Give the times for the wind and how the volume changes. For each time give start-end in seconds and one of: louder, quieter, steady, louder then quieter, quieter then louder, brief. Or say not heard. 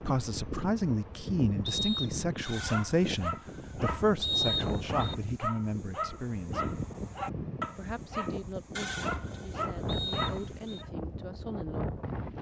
0.0-12.3 steady.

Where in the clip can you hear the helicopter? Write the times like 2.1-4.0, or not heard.
not heard.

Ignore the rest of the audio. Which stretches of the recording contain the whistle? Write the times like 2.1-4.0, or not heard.
1.6-2.5, 4.2-5.2, 9.8-10.8.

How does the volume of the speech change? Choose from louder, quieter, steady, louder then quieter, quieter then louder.
quieter.